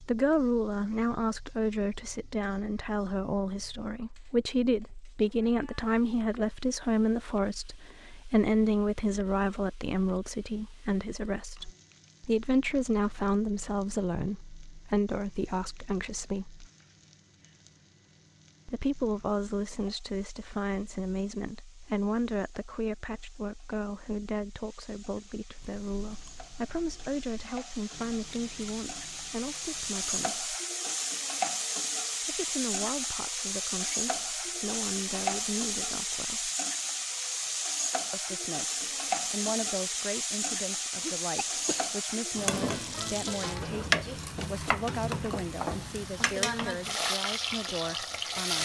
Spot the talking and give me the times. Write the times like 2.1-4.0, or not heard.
0.0-16.6, 18.6-30.4, 32.2-36.5, 38.1-48.6.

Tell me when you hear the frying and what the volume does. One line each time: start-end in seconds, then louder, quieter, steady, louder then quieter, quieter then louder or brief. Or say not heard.
0.0-48.6 louder.